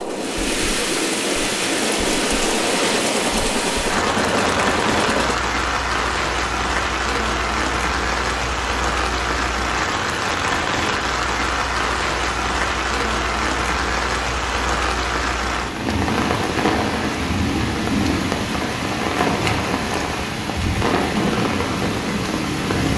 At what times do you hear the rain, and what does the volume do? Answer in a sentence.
You can hear the rain from 0.0 to 22.9 s, at a steady volume.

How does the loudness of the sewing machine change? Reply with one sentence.
The volume of the sewing machine goes up.